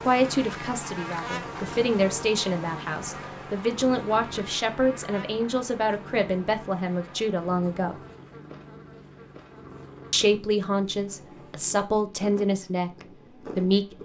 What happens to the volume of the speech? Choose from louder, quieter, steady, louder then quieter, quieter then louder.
steady.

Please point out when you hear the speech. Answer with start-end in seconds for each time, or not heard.
0.0-8.0, 10.1-14.0.